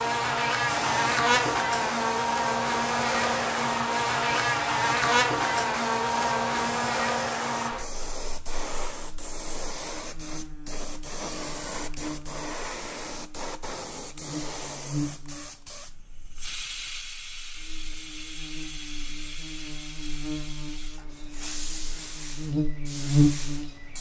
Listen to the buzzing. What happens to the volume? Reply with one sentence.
The volume of the buzzing goes down, then up.